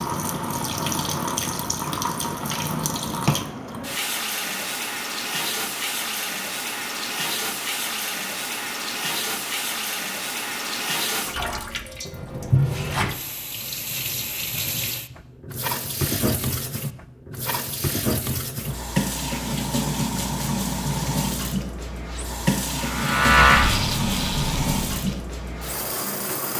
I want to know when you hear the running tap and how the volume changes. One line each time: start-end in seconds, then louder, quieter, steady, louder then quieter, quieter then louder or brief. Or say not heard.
0.0-26.5 steady.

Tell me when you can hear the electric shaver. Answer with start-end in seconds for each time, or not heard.
22.7-25.2.